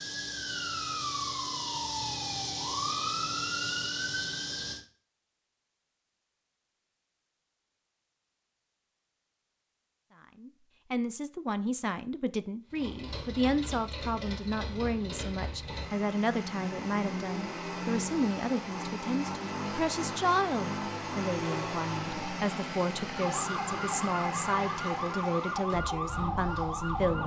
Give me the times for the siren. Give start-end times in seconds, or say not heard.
0.0-4.8, 23.1-27.2.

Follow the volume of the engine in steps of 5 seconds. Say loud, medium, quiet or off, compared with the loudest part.
off, off, medium, loud, loud, medium.